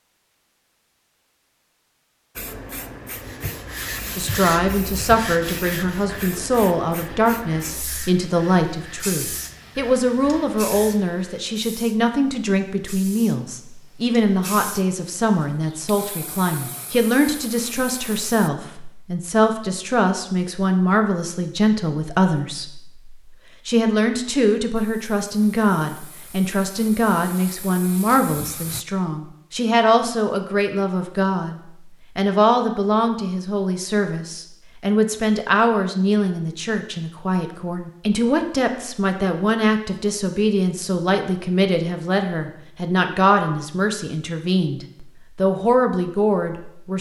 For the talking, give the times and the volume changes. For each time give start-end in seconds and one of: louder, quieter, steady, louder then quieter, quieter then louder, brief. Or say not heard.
4.2-46.9 steady.